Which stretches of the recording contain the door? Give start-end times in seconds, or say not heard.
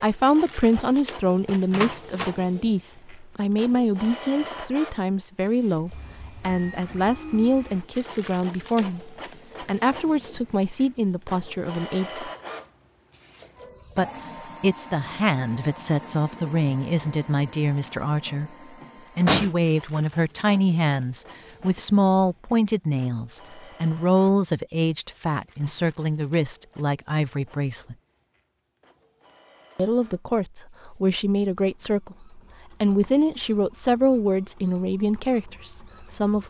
1.7-2.4, 18.8-19.5.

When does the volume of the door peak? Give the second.
19 s.